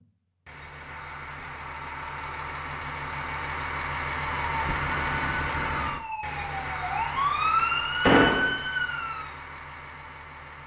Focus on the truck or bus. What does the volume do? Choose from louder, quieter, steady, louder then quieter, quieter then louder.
louder then quieter.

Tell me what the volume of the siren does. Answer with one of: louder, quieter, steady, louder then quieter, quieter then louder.
louder.